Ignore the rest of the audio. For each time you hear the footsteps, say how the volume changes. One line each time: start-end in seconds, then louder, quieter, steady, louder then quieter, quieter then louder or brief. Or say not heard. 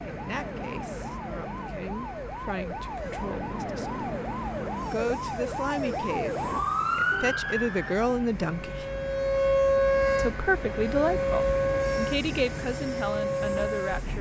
not heard.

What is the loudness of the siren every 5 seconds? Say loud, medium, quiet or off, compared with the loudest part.
medium, loud, loud.